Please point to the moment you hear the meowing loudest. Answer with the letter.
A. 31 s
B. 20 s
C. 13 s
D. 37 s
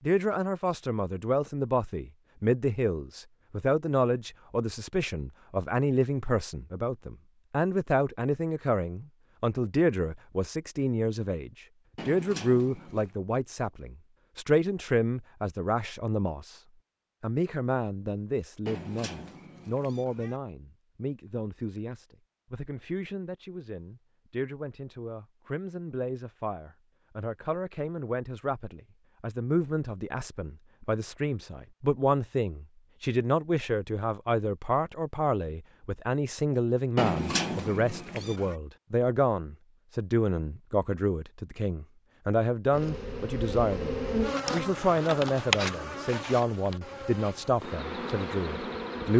D.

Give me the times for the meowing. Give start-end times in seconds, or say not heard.
11.9-13.2, 18.6-20.4, 37.0-38.5.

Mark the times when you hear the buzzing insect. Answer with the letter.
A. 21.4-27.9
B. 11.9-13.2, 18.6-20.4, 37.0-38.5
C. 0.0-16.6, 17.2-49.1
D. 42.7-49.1
D.